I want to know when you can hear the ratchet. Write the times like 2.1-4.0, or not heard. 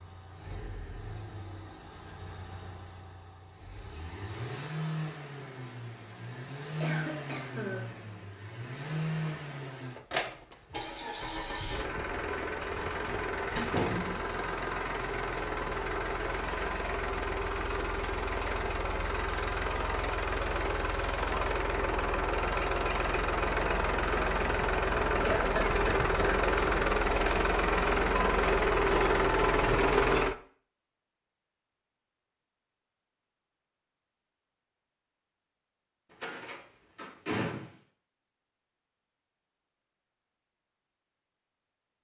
not heard.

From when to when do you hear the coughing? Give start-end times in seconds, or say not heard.
6.8-7.9, 25.2-26.4.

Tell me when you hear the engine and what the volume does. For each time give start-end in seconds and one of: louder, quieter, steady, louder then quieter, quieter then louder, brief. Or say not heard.
0.0-30.4 louder.